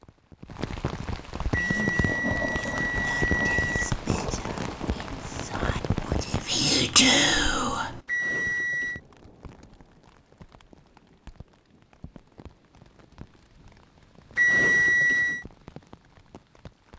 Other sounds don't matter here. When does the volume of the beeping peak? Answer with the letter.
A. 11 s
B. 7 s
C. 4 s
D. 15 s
D.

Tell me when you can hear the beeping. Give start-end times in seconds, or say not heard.
1.5-4.0, 8.1-9.0, 14.3-15.4.